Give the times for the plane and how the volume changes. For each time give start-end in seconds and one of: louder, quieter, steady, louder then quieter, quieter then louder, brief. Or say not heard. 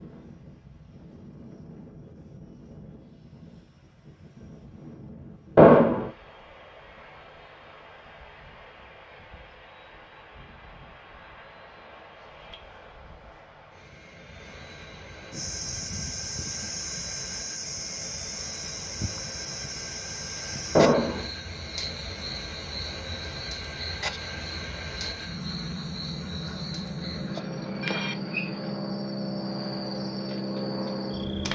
0.0-31.5 louder.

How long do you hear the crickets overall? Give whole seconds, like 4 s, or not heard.
16 s.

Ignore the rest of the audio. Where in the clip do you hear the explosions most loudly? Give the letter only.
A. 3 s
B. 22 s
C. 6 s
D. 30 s
C.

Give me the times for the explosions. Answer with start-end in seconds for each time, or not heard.
5.5-6.1, 20.8-21.2.